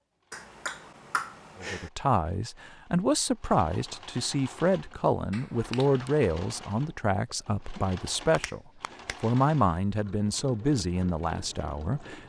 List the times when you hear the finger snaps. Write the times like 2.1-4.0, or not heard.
0.3-1.9, 5.3-6.1, 8.3-9.2.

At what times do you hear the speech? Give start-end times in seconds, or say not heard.
1.6-12.2.